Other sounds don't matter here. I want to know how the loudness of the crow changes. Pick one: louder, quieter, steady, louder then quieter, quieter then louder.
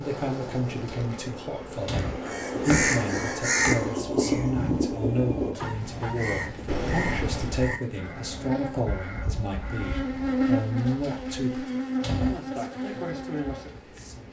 quieter.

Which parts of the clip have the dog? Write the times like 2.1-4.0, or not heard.
5.5-6.8.